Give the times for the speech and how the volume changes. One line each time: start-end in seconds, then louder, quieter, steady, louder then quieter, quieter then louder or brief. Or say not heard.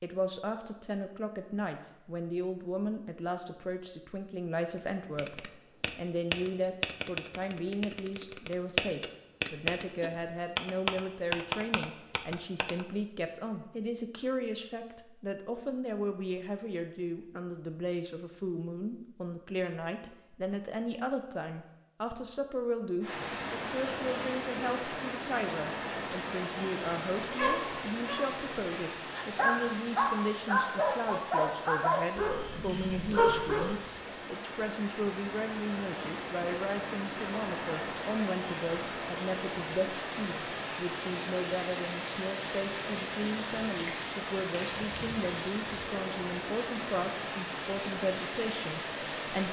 0.0-49.4 steady.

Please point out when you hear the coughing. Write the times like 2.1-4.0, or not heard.
not heard.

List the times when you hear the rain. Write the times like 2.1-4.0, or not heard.
23.0-49.4.